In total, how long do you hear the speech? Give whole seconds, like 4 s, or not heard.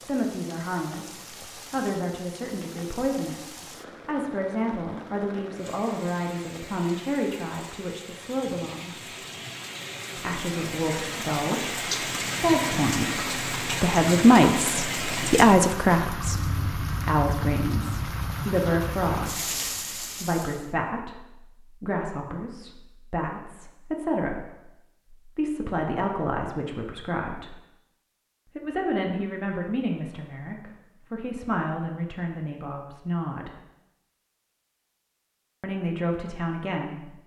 33 s.